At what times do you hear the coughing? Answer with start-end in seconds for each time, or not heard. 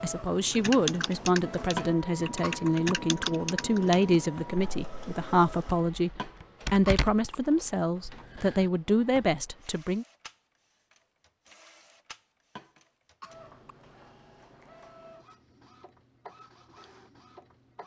1.8-3.0, 6.2-7.3, 12.6-13.5.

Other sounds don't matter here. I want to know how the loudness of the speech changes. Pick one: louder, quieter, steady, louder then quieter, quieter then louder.
steady.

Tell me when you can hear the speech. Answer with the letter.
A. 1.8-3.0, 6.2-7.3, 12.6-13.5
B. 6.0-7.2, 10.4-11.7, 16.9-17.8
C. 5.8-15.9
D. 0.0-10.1
D.